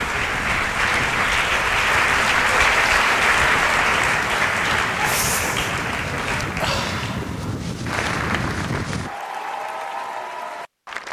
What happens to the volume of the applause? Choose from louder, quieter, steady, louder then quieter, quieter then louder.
quieter.